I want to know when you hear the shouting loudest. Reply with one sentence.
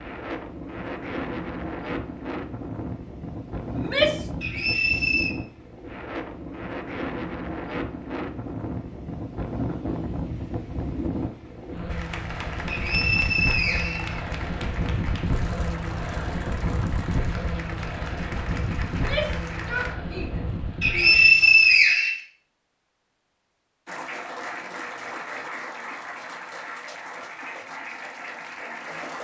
The loudest moment of the shouting is at 4 seconds.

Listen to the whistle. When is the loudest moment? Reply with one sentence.
The loudest moment of the whistle is at 21 seconds.